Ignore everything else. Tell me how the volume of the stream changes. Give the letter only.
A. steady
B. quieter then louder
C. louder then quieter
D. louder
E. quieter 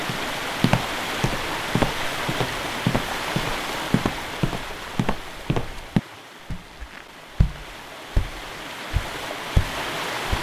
B.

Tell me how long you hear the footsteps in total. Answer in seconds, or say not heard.
10 s.